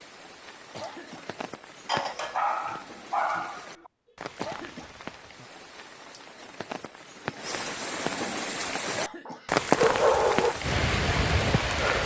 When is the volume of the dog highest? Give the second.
10 s.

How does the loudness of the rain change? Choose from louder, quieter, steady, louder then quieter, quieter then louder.
louder.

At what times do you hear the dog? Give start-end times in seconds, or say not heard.
1.9-3.9, 9.2-10.6.